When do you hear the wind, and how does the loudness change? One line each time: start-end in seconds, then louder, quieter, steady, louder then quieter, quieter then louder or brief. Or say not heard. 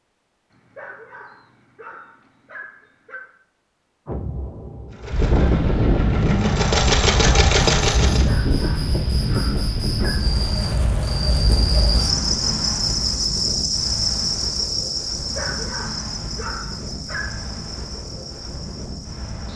5.1-19.5 quieter.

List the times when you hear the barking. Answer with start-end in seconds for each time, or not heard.
0.5-3.4, 8.1-10.3, 15.2-17.6.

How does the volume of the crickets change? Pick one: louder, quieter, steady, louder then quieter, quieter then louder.
louder then quieter.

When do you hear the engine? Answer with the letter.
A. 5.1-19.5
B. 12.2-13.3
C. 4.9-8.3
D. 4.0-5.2
C.